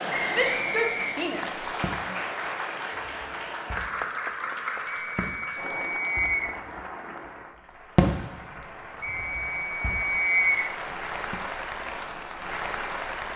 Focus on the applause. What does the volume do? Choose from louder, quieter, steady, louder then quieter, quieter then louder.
quieter then louder.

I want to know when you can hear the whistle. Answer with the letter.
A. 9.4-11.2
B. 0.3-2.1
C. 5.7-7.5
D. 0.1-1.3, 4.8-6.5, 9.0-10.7
D.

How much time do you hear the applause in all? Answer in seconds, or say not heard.
13 s.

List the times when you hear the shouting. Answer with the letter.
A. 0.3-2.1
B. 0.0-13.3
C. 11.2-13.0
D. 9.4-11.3
A.